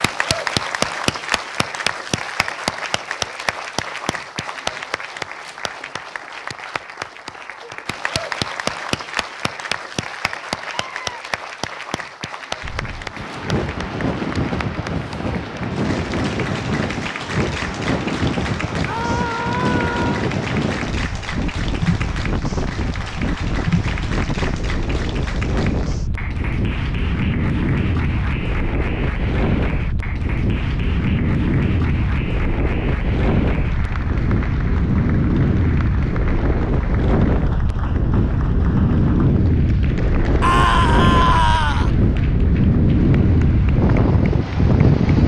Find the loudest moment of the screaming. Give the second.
41 s.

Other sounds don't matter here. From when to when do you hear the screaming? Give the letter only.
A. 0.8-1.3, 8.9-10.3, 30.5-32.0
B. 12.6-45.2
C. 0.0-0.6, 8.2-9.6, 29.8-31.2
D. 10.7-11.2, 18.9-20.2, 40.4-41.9
D.